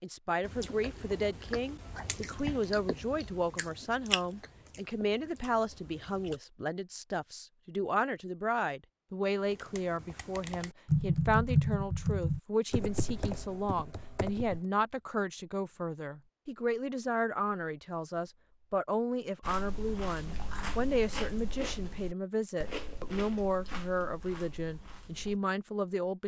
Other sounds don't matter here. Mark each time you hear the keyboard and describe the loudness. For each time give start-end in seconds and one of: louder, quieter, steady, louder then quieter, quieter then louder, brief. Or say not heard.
9.5-14.6 louder then quieter.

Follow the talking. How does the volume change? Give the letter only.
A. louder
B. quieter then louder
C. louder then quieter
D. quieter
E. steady
E.